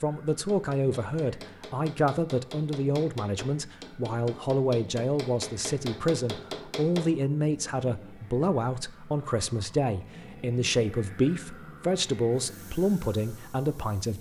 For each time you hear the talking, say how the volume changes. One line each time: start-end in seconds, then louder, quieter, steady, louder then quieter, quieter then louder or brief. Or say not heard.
0.0-14.1 steady.